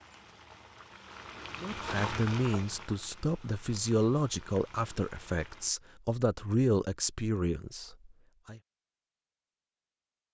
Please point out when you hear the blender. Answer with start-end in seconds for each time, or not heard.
not heard.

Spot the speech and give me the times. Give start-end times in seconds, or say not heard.
1.6-8.6.